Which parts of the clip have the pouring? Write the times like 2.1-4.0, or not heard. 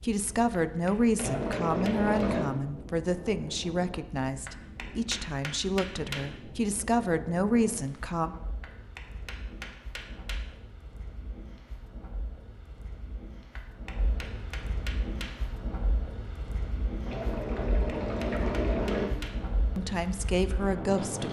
1.1-2.5, 17.1-19.1.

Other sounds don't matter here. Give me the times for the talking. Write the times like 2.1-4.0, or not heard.
0.0-8.3, 19.8-21.2.